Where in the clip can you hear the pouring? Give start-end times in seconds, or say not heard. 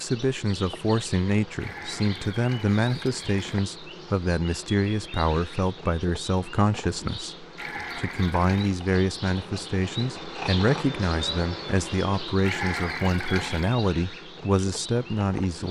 1.6-3.6, 7.5-8.7, 12.4-13.8.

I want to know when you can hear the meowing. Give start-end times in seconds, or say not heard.
not heard.